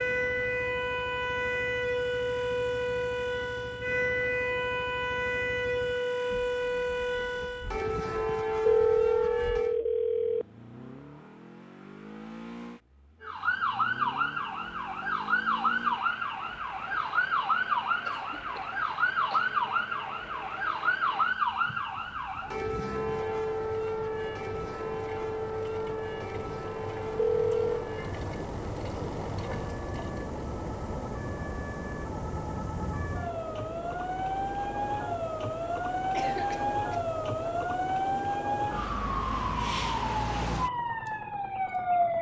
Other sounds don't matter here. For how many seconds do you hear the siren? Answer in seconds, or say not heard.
39 s.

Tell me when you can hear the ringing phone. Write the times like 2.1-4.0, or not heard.
8.7-10.4, 27.1-27.9.